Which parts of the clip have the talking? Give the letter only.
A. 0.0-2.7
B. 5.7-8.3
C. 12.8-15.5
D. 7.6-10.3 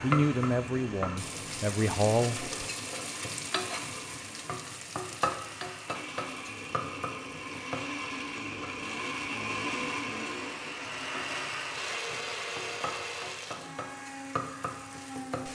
A.